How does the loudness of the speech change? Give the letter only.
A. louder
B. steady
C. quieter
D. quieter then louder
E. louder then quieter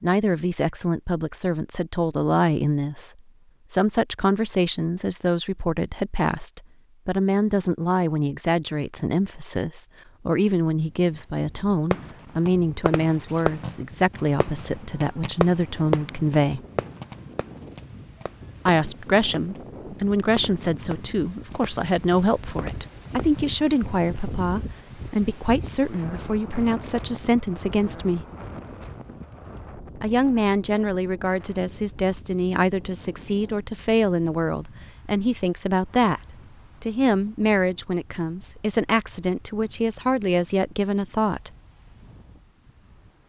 B.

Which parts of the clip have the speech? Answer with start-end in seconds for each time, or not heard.
0.0-3.1, 3.7-16.6, 18.6-28.2, 30.0-36.2, 36.8-41.5.